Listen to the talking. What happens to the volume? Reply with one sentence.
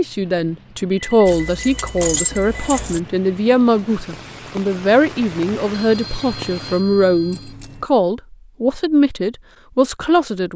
The volume of the talking stays about the same.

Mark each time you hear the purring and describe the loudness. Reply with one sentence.
You can't hear the purring here.